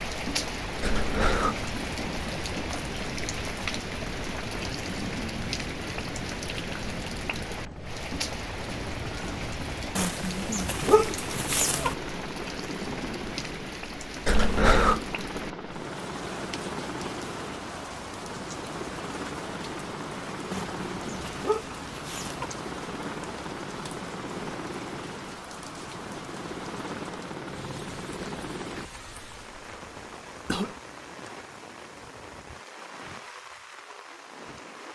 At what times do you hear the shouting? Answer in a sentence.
You can't hear the shouting here.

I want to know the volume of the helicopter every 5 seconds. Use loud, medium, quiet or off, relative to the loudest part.
loud, loud, loud, loud, loud, loud, off.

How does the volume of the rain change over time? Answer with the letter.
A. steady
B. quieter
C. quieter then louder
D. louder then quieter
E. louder
B.